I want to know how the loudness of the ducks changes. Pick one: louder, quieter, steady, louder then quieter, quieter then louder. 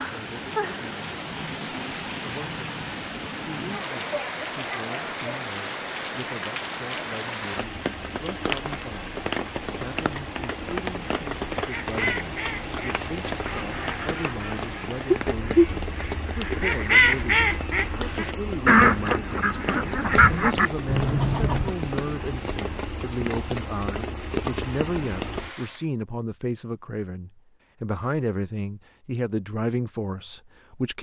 louder.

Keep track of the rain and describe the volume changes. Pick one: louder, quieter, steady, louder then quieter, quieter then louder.
steady.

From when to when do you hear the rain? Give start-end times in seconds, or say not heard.
0.0-25.9.